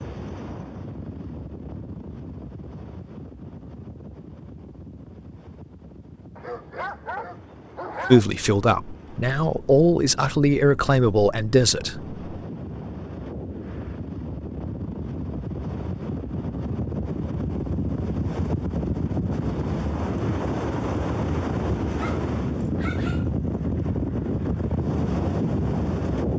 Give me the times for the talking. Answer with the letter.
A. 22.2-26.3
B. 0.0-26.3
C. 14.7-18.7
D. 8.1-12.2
D.